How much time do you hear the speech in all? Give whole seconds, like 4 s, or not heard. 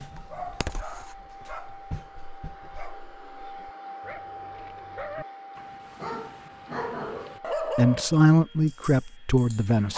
2 s.